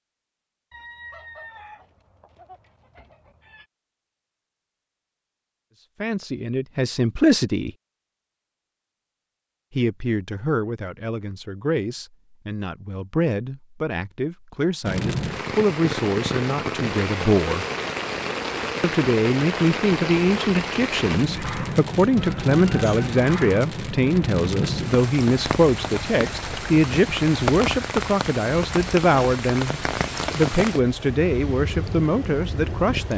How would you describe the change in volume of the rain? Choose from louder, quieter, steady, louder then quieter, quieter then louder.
steady.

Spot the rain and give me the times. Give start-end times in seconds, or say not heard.
14.8-33.1.